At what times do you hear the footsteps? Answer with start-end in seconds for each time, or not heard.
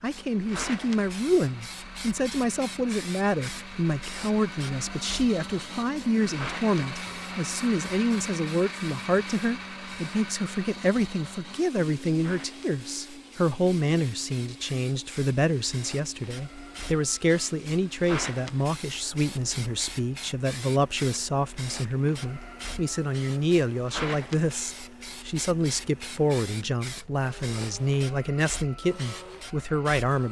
not heard.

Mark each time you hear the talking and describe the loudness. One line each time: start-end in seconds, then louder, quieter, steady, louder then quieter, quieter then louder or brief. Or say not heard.
0.0-30.2 steady.